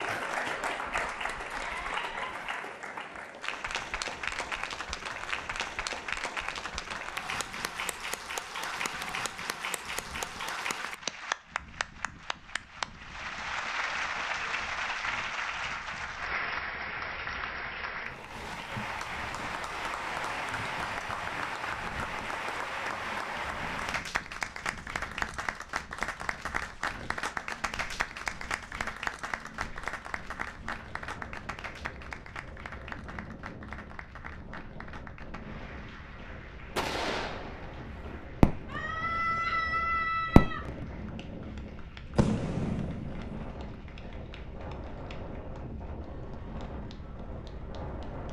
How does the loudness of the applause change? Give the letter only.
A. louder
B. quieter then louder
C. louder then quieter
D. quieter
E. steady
D.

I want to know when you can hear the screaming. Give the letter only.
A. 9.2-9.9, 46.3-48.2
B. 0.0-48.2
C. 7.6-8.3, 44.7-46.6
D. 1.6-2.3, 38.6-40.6
D.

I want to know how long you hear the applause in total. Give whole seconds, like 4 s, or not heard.
48 s.